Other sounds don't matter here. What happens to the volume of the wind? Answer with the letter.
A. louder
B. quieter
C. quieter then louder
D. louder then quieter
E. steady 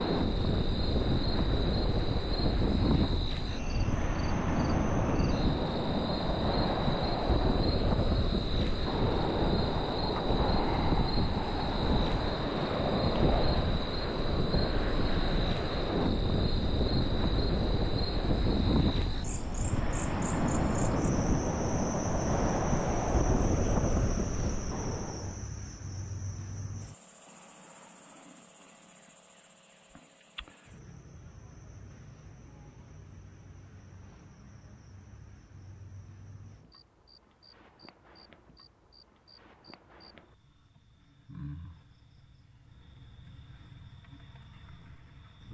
E.